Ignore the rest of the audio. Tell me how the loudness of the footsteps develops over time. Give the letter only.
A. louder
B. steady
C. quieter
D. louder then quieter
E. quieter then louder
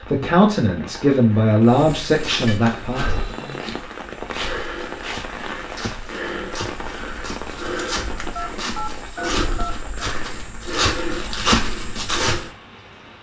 A.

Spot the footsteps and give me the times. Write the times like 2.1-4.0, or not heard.
1.6-12.5.